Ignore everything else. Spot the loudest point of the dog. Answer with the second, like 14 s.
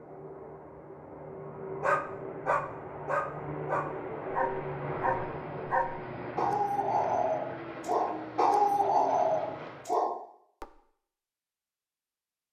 9 s.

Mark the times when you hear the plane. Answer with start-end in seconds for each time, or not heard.
0.0-9.9.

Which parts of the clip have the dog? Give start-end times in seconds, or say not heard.
1.8-10.7.